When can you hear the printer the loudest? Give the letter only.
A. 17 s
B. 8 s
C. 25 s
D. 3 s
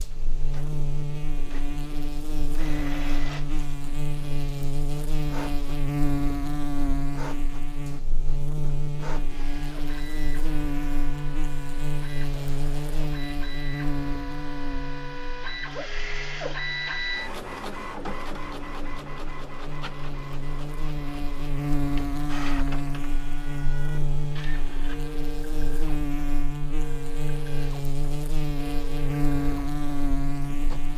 A.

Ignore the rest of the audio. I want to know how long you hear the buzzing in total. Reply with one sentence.
You can hear the buzzing for 31 seconds altogether.